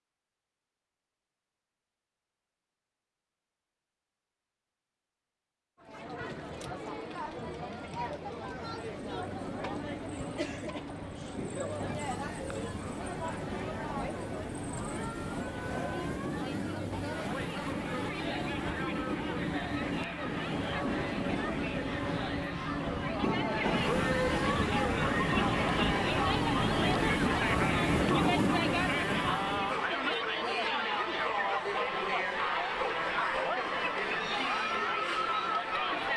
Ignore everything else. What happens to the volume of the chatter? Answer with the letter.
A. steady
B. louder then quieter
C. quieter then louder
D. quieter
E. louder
E.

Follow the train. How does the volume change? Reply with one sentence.
The volume of the train goes up.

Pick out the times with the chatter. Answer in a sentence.
You can hear the chatter from 5.8 to 36.1 s.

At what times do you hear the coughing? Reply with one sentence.
The coughing can't be heard in this clip.